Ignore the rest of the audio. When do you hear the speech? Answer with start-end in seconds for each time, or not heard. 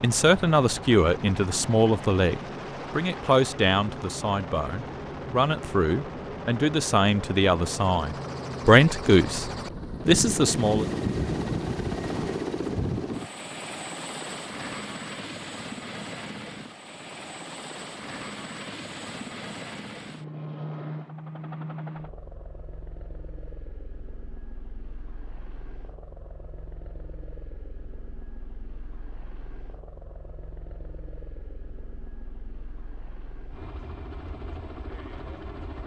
0.0-10.8.